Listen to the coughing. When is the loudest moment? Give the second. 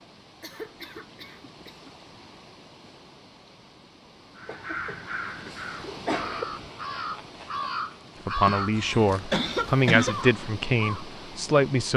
10 s.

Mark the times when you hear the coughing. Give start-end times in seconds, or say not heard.
0.4-1.9, 4.5-5.0, 5.8-6.5, 8.4-10.2.